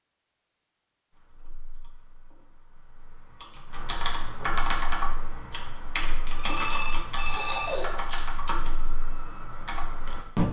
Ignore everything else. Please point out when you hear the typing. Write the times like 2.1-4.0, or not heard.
1.1-10.4.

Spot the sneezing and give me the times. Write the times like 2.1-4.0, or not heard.
7.2-8.3.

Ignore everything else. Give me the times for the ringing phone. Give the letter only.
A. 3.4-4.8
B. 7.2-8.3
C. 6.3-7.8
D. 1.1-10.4
C.